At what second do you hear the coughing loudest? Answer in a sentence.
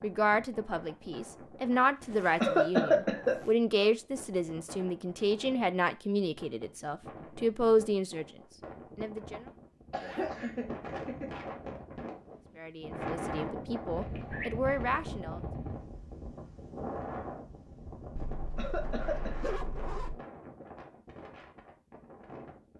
The loudest moment of the coughing is at 3 seconds.